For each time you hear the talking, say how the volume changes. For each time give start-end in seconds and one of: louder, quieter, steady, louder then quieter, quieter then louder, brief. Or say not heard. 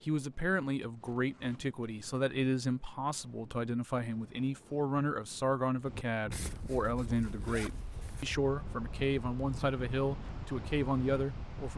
0.0-11.7 steady.